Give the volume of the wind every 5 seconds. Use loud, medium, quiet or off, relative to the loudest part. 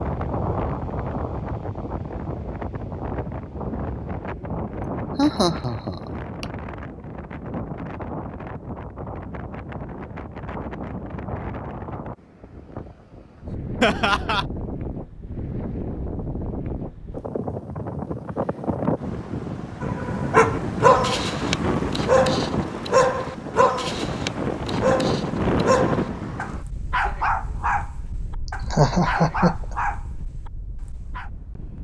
loud, medium, medium, loud, loud, loud, quiet.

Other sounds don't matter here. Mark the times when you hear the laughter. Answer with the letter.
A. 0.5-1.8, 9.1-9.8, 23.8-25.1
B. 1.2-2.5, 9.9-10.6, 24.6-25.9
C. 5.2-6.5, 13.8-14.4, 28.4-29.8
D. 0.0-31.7
C.